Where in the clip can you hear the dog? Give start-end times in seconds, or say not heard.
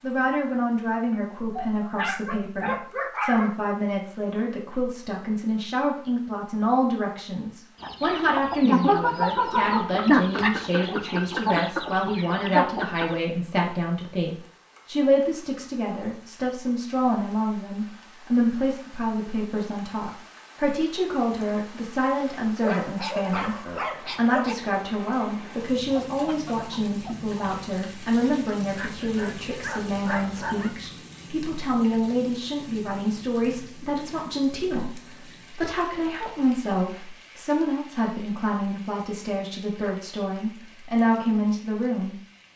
1.1-3.5, 22.6-24.6, 28.8-30.8.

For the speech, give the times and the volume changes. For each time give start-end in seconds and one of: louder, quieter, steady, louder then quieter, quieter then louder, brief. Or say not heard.
0.0-42.5 steady.